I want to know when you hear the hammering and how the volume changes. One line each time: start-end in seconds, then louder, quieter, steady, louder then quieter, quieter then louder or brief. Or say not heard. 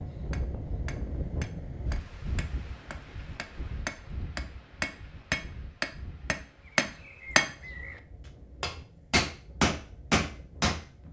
0.0-8.0 louder
8.6-10.8 brief.